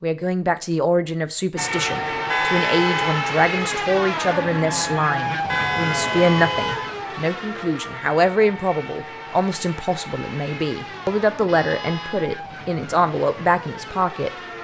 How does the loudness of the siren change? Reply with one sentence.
The loudness of the siren goes down.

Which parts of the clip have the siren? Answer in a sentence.
The siren can be heard from 1.6 to 14.5 s.